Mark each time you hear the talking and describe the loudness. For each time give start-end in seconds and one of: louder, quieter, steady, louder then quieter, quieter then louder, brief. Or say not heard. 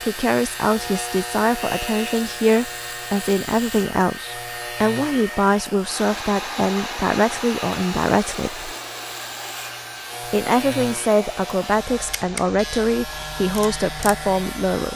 0.0-8.7 steady
10.3-14.9 steady.